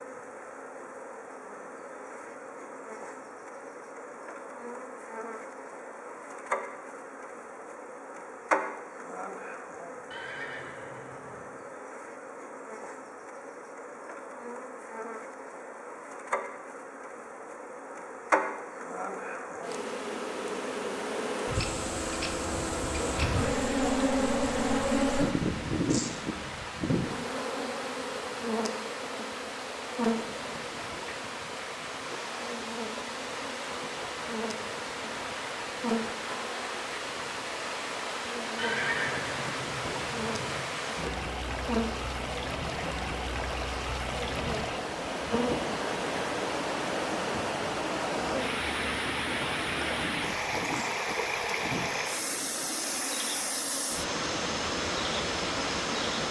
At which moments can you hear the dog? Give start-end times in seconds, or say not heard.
not heard.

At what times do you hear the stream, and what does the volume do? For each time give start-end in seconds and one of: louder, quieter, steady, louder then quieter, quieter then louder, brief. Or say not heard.
21.5-56.2 louder.